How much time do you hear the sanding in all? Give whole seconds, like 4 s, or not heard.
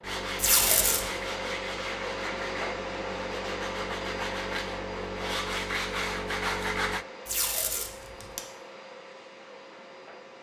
7 s.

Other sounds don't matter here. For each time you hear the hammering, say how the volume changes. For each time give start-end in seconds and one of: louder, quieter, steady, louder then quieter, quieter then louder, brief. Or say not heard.
not heard.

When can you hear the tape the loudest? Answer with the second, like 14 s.
1 s.